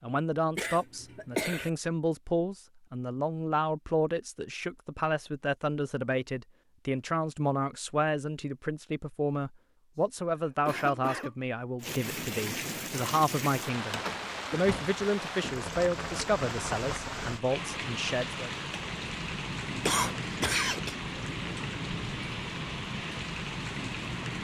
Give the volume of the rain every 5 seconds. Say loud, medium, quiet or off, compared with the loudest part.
off, off, loud, loud, loud.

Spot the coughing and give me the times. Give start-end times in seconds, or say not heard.
0.6-1.7, 9.9-11.3, 19.8-20.9.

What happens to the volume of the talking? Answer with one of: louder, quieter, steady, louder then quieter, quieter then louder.
steady.